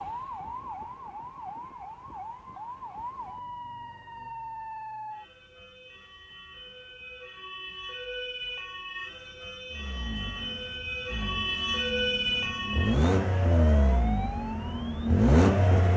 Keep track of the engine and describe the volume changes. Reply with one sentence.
The loudness of the engine goes up.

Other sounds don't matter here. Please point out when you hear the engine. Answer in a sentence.
You can hear the engine from 9.7 to 15.9 s.